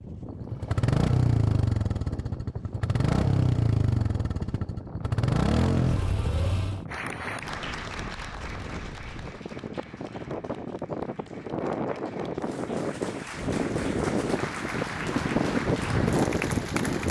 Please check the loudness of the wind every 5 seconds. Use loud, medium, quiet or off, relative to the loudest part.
quiet, quiet, medium, loud.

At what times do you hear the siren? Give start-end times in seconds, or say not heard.
not heard.